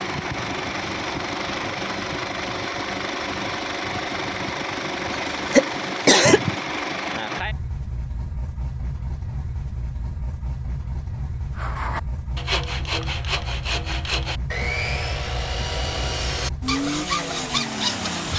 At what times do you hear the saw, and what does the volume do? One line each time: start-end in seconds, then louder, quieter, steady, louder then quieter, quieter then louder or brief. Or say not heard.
11.6-18.3 steady.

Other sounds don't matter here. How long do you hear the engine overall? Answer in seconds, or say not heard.
18 s.